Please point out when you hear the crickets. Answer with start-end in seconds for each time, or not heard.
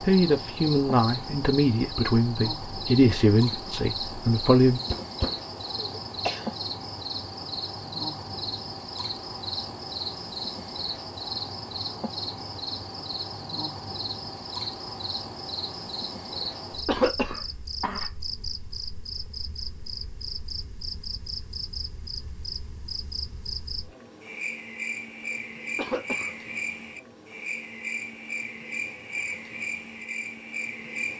0.0-31.1.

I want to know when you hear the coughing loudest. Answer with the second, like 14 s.
17 s.